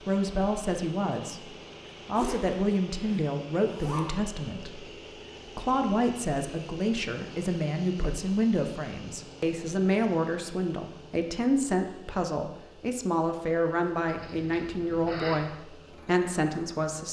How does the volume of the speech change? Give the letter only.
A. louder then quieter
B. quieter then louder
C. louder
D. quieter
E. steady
E.